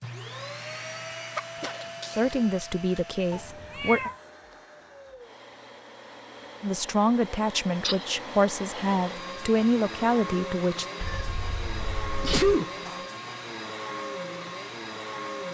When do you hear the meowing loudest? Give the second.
4 s.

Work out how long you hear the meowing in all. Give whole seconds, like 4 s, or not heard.
2 s.